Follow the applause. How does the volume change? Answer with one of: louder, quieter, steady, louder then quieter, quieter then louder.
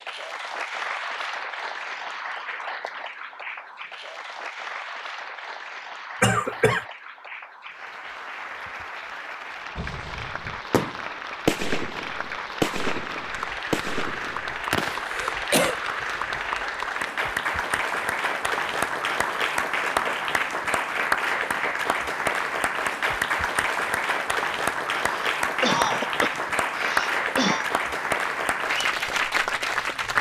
louder.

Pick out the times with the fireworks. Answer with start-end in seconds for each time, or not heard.
9.8-15.2.